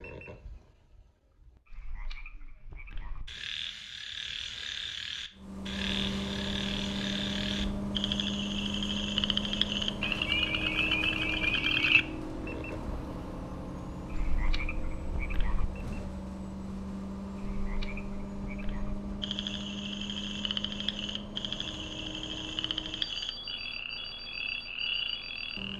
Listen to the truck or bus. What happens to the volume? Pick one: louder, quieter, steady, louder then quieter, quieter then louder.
quieter.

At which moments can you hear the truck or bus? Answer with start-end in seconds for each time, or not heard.
5.3-25.7.